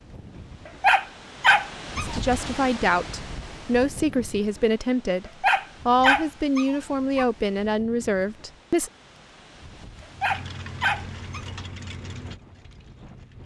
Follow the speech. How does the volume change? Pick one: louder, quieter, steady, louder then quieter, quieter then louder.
steady.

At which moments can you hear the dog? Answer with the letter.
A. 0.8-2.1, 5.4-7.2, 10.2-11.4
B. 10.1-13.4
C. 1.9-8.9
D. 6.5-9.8
A.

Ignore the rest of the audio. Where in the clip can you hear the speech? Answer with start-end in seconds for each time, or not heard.
1.9-8.9.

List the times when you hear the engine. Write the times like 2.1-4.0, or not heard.
10.1-13.4.